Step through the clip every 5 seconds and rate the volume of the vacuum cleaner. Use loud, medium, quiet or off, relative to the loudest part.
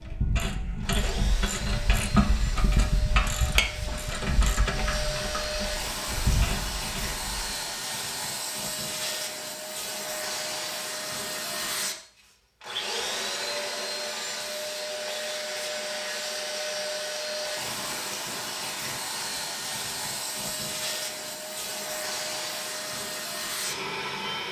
medium, loud, loud, loud, loud.